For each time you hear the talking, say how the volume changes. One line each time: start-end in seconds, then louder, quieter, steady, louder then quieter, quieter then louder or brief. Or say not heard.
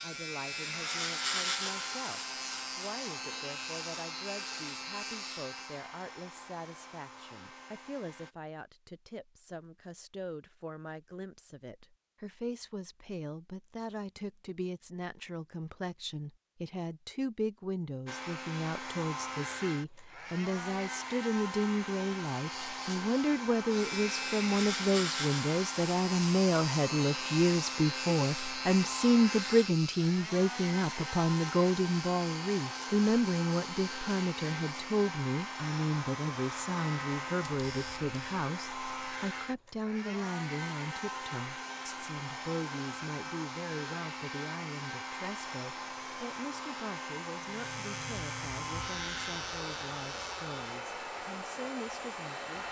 0.0-52.6 louder then quieter.